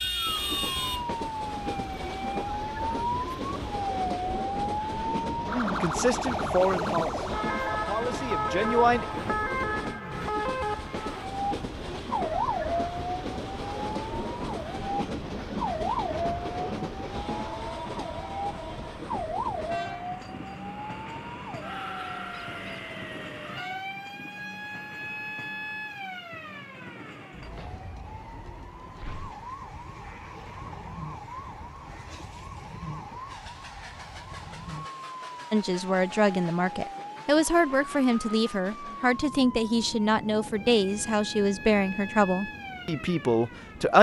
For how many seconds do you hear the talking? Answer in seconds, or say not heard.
12 s.